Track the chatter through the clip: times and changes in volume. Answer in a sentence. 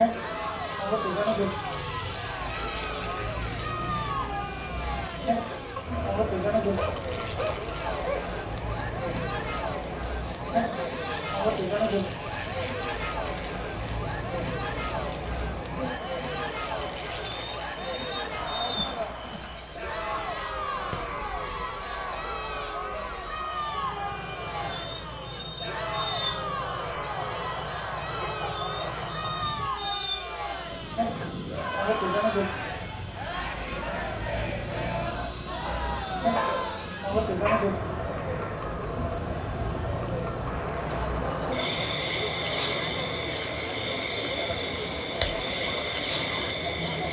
You can hear the chatter from 0.1 to 47.0 s, at a steady volume.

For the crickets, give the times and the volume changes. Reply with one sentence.
The crickets can be heard from 0.0 to 47.0 s, at a steady volume.